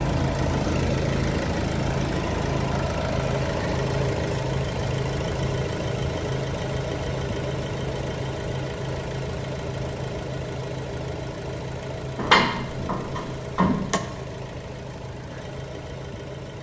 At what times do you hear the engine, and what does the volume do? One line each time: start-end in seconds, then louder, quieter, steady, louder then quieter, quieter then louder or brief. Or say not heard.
0.0-16.5 quieter.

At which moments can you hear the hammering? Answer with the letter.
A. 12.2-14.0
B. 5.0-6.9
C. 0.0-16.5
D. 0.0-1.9
A.